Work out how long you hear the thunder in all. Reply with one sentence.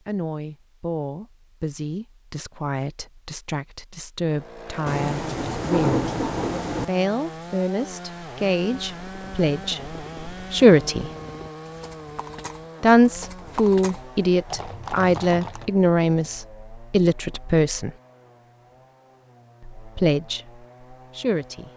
The thunder can be heard for 2 seconds in total.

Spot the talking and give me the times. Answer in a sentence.
The talking can be heard from 0.1 to 6.0 s, from 6.8 to 11.1 s, from 12.8 to 17.9 s and from 19.6 to 21.7 s.